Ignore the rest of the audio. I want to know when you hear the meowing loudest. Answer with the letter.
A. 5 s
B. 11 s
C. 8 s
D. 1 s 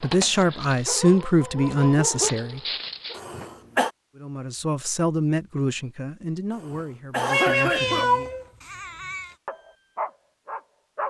C.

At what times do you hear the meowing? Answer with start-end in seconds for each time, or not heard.
7.2-9.3.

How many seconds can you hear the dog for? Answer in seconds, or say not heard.
5 s.